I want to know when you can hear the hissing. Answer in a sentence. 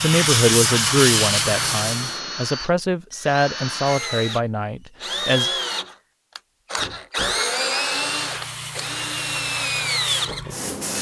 The hissing can be heard from 0.0 to 2.2 s and from 7.8 to 10.9 s.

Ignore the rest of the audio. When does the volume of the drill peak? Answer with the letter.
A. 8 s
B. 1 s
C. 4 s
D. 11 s
A.